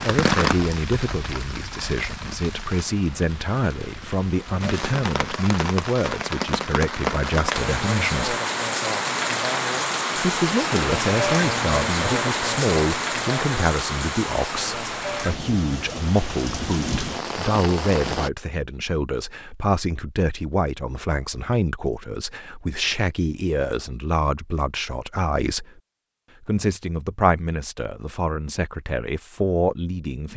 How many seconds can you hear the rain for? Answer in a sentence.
The rain can be heard for 18 seconds in total.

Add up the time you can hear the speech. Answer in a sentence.
The speech can be heard for 28 seconds in total.